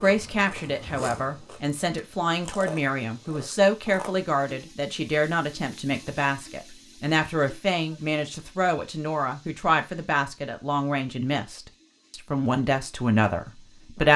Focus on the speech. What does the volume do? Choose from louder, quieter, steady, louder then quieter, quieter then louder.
steady.